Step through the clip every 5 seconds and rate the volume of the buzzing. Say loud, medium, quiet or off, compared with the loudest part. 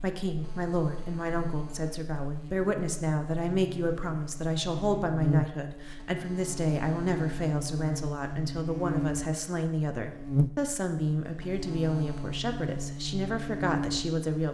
medium, loud, loud.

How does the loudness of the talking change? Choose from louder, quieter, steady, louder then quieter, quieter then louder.
steady.